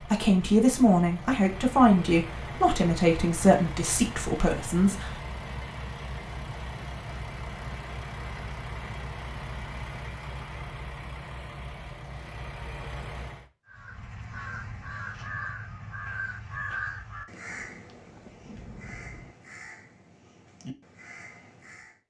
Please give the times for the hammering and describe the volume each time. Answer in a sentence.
You can't hear the hammering here.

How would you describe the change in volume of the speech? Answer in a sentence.
The volume of the speech goes down.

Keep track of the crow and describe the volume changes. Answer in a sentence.
The loudness of the crow goes down.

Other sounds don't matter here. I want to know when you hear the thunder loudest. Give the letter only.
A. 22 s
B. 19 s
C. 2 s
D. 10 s
B.